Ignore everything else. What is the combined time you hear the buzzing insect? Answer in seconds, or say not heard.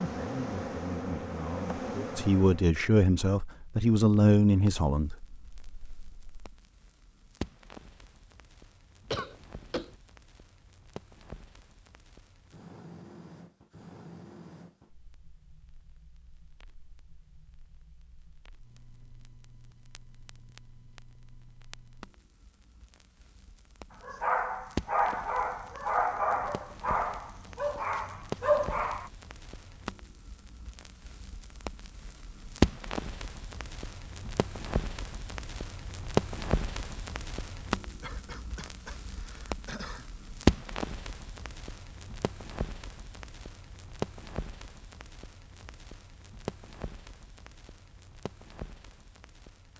3 s.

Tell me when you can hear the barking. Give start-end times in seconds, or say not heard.
24.0-29.1.